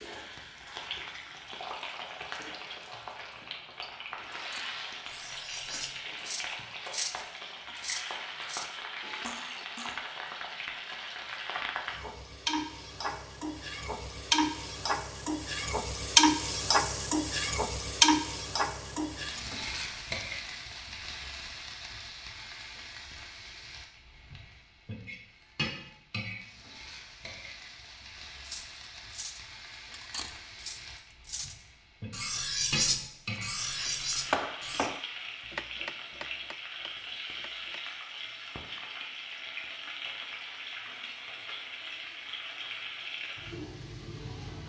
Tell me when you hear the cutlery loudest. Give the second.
33 s.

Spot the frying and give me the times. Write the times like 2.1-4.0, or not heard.
0.0-44.6.